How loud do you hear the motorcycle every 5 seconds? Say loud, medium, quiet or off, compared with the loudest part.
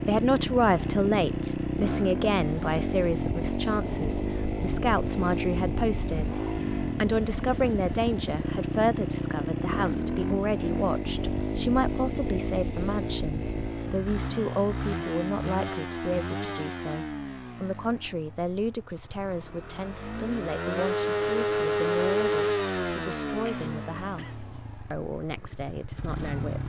loud, loud, loud, medium, loud, medium.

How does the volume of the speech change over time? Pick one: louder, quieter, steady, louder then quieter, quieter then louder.
quieter.